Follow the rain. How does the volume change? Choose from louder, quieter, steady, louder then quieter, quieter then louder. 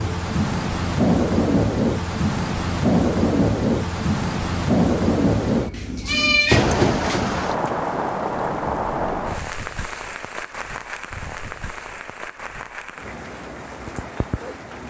quieter.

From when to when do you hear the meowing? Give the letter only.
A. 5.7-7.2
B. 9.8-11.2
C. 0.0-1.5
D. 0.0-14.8
A.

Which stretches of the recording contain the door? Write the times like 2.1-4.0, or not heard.
not heard.